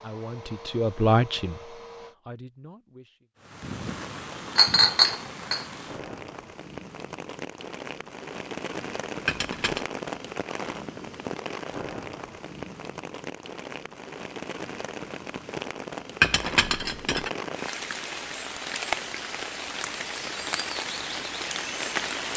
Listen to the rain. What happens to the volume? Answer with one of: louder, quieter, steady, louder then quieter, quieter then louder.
louder.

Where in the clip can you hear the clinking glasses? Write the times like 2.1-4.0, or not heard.
4.5-5.7, 9.2-9.8, 16.2-17.3.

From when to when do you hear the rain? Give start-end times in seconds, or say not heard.
3.4-22.3.